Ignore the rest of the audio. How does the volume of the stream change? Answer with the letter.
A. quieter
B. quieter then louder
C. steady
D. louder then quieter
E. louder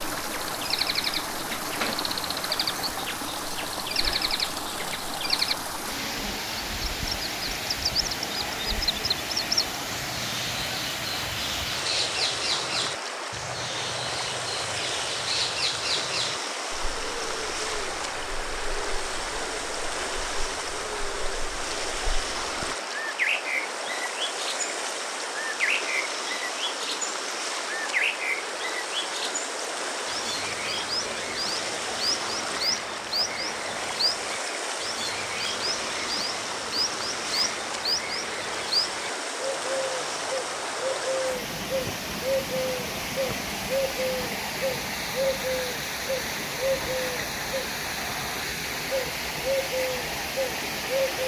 C.